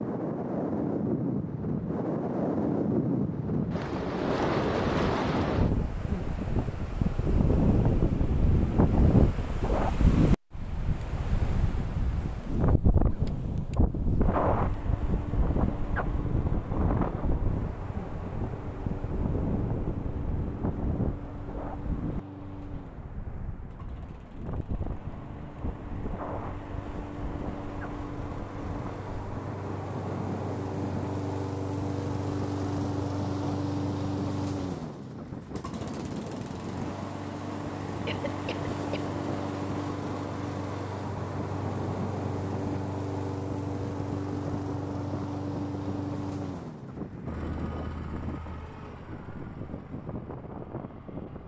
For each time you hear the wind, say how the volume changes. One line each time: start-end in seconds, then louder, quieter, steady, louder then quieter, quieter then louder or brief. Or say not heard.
0.0-51.4 quieter.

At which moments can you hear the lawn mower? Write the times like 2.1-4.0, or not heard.
14.2-51.4.